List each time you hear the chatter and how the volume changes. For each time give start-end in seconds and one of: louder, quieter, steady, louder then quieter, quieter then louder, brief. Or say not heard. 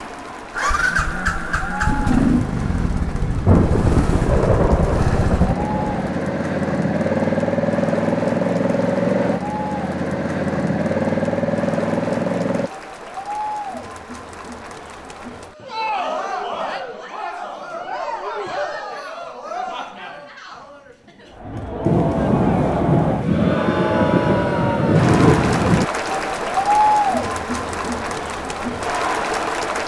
0.0-29.8 louder.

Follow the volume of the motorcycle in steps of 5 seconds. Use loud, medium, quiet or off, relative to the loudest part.
loud, loud, loud, off, off, off.